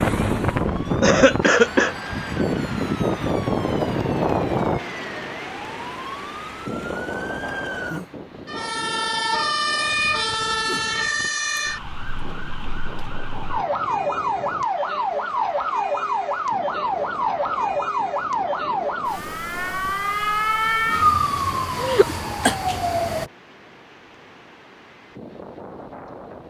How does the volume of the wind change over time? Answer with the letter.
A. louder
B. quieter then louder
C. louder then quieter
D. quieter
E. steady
D.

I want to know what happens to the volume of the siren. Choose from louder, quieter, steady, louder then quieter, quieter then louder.
louder.